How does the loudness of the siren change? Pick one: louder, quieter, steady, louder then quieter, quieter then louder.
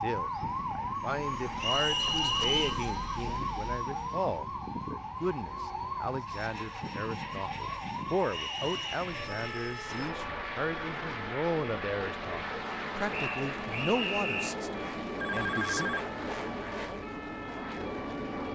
quieter.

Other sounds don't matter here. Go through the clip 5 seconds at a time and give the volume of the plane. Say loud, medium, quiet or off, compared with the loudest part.
medium, medium, loud, loud.